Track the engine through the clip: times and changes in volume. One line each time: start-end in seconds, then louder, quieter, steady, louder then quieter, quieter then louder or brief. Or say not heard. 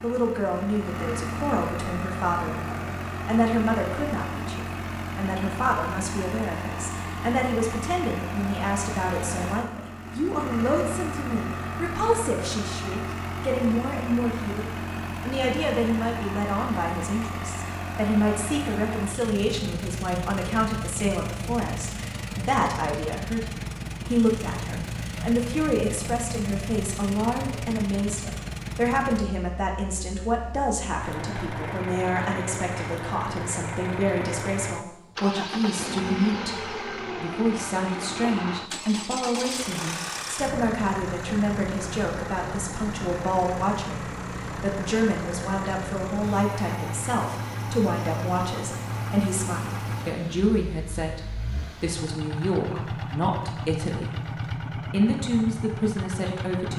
0.0-56.7 steady.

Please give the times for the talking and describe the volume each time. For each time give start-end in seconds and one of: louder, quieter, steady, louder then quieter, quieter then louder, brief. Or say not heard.
0.0-56.7 steady.